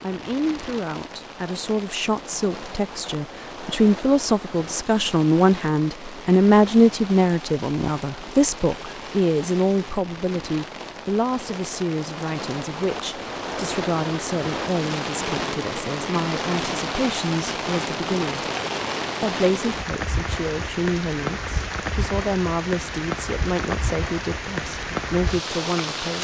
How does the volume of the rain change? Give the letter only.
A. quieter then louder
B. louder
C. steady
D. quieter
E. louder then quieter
B.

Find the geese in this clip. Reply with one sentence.
You can't hear the geese here.